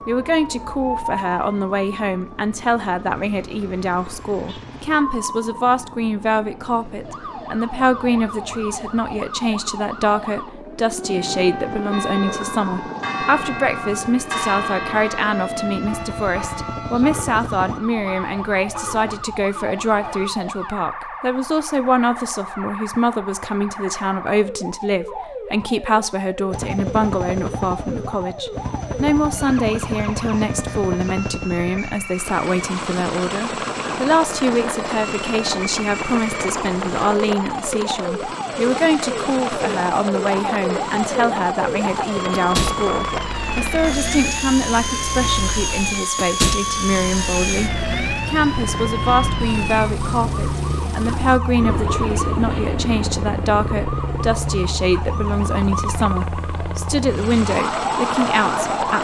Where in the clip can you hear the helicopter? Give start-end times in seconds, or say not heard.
0.0-17.8, 26.5-58.9.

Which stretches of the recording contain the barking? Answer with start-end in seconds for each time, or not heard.
not heard.